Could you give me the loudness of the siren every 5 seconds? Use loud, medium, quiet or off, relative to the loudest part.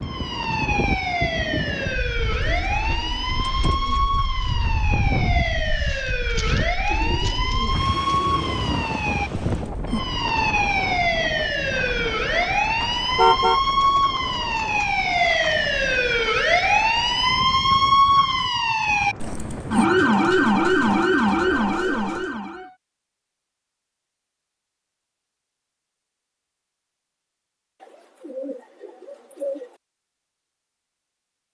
medium, medium, loud, loud, loud, off, off.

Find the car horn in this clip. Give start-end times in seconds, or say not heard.
12.8-13.6.